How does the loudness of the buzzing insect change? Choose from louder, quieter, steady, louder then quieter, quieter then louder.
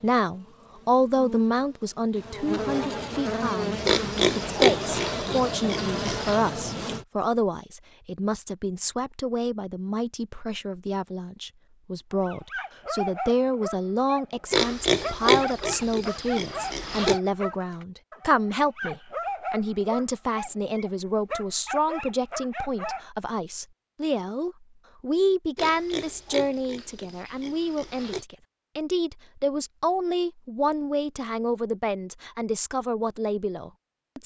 louder.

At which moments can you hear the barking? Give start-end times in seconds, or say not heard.
12.1-23.1.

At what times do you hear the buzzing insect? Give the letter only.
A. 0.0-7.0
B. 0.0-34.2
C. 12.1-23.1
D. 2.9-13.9
A.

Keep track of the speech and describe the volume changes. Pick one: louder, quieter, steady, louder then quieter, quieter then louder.
steady.